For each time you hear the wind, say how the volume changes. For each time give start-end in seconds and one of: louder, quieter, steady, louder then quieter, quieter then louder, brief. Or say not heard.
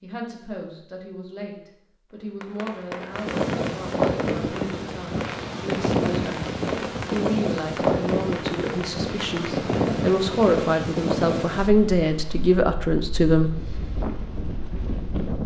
3.1-15.4 quieter.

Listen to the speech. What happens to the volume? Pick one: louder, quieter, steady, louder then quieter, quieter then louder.
louder.